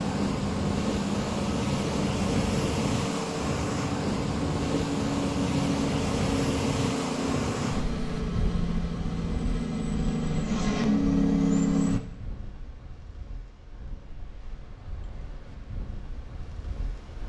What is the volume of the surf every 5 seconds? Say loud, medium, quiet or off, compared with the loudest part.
loud, loud, quiet, quiet.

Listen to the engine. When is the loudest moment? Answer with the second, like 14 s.
11 s.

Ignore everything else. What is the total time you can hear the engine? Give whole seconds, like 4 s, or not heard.
12 s.